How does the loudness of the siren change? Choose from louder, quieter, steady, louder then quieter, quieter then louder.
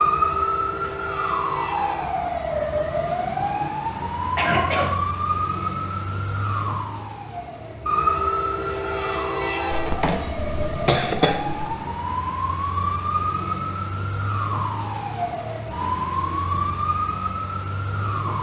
steady.